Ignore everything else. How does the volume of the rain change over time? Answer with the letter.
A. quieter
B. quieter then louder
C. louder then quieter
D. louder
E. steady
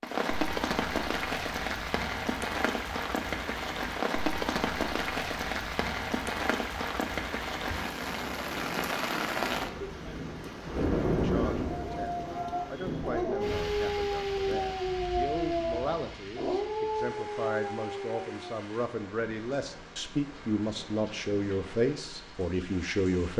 A.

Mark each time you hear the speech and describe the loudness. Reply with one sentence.
The speech can be heard from 11.1 to 23.3 s, getting louder.